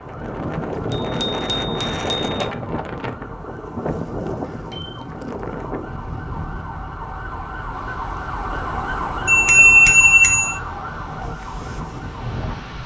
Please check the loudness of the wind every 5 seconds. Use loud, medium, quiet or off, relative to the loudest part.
loud, medium, medium.